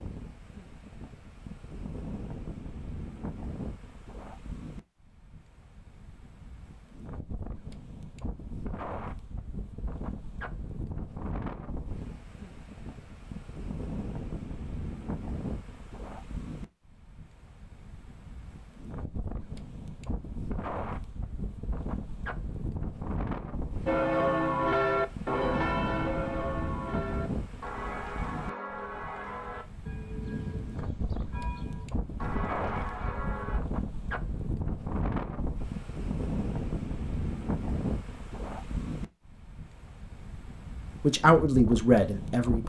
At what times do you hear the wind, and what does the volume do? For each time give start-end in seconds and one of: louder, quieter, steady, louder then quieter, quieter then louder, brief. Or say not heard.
0.0-42.6 louder.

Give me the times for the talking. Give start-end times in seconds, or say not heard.
41.0-42.6.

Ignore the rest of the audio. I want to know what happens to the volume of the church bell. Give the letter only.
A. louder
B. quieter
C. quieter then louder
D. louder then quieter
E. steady
B.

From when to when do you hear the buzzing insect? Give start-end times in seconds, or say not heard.
not heard.